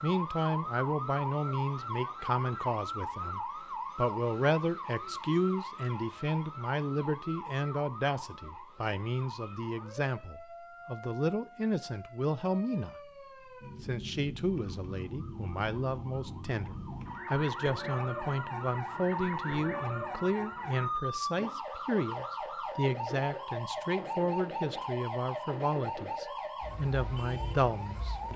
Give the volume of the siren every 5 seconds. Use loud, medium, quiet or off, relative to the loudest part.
loud, medium, medium, loud, loud, loud.